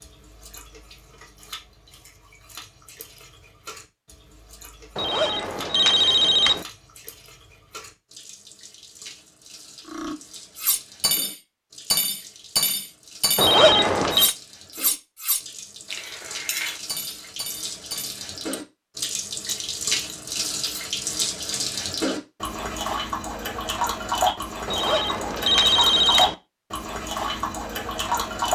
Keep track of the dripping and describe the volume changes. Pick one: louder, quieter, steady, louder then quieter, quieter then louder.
louder.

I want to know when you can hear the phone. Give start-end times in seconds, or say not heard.
5.0-6.7, 13.3-14.3, 24.6-26.4.